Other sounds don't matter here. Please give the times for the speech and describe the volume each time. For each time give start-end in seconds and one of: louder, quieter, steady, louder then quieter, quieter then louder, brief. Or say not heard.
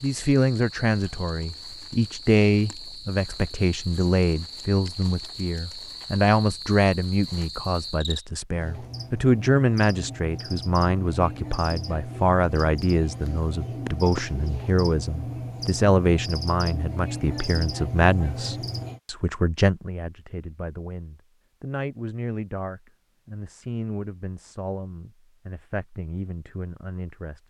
0.0-27.4 quieter.